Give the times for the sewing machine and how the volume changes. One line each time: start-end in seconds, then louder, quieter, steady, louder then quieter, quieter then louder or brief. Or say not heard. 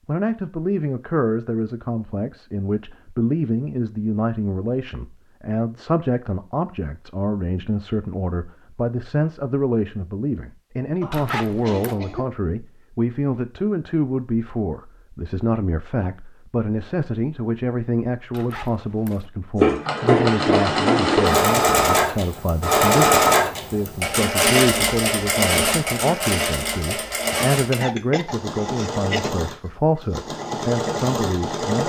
19.6-31.8 quieter.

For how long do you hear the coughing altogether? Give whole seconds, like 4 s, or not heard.
3 s.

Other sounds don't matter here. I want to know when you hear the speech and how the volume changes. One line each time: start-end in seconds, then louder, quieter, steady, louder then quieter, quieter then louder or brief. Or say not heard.
0.1-31.8 steady.